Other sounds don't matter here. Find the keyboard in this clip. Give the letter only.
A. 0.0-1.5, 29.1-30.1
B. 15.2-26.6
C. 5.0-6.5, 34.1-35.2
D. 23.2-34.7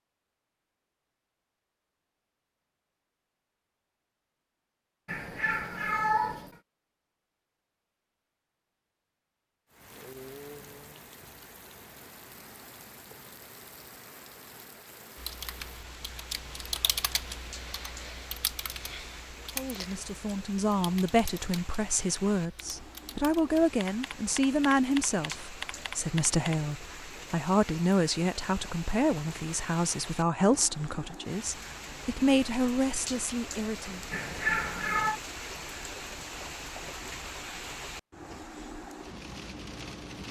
B.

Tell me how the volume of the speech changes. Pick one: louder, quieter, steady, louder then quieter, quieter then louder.
steady.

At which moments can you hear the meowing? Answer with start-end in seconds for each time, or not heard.
5.0-6.5, 34.1-35.2.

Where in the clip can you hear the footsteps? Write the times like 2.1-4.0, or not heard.
not heard.